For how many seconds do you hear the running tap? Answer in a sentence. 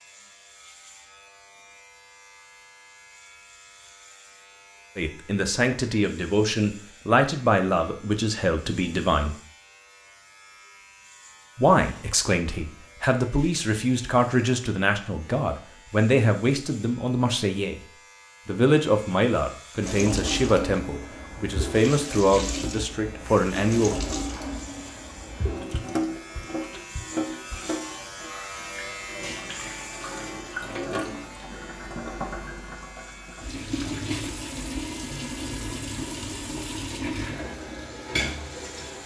You can hear the running tap for 19 seconds altogether.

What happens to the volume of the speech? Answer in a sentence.
The loudness of the speech stays about the same.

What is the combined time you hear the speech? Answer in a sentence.
You can hear the speech for 16 seconds altogether.